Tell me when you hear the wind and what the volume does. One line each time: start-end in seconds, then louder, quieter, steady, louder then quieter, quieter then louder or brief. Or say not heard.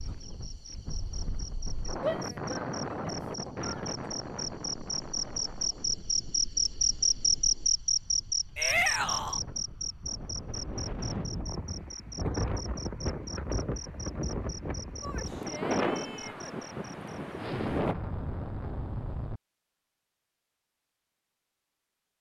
0.0-17.9 quieter then louder.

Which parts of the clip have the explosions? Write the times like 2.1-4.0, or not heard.
17.4-19.4.